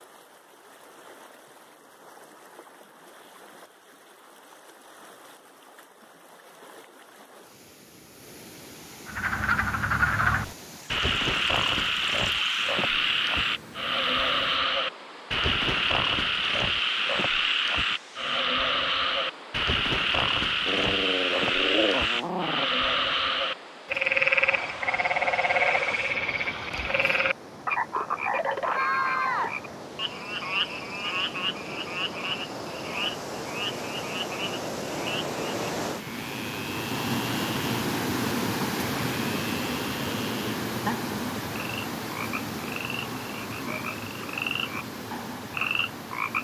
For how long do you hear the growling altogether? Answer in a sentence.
The growling can be heard for 2 seconds in total.